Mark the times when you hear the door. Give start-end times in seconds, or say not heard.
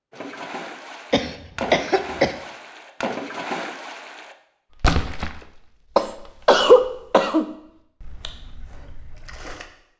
not heard.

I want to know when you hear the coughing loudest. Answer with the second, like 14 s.
7 s.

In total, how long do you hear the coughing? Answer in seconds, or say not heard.
3 s.